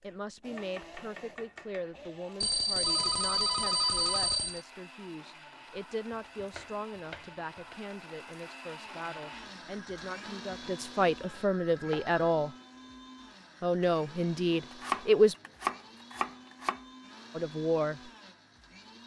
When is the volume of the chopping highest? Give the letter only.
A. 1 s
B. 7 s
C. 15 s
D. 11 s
C.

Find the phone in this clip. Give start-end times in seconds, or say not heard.
2.4-4.7, 11.2-12.7.